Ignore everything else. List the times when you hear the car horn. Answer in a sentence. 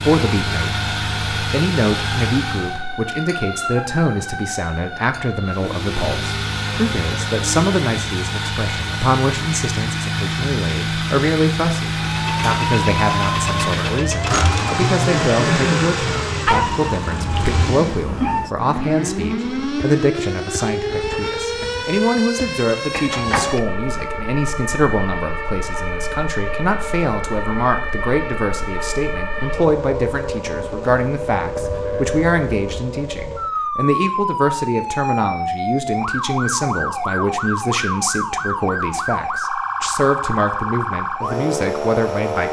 You can't hear the car horn here.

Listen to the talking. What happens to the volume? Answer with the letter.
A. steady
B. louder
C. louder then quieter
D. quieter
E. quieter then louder
A.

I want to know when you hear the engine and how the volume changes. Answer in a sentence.
The engine can be heard briefly from 0.0 to 2.8 s; and from 5.5 to 18.1 s, at a steady volume.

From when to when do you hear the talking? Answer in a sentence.
The talking can be heard from 0.0 to 42.4 s.